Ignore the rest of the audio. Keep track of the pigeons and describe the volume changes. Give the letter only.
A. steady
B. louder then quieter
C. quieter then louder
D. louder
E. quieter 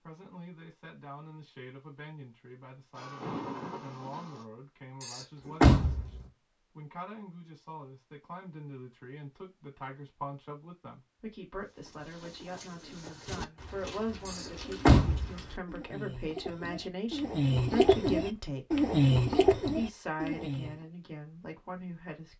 D.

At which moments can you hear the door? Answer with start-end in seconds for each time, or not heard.
5.0-6.2, 14.2-15.4.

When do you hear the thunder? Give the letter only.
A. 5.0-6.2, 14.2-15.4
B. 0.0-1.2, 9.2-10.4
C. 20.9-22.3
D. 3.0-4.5
D.